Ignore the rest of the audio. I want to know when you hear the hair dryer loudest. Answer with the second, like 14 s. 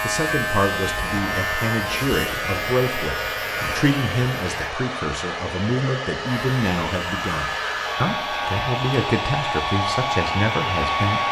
11 s.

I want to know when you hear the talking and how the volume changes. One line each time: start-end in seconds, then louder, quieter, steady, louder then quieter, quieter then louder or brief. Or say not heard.
0.0-11.2 steady.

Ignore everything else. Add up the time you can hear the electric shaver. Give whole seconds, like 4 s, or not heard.
10 s.